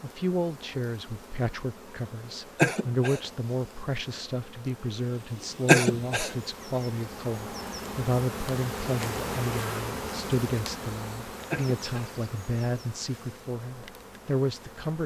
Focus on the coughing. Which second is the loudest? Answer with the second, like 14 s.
6 s.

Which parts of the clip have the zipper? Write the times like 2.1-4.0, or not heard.
not heard.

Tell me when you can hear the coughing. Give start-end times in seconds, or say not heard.
2.5-3.2, 5.7-6.3, 11.5-12.2.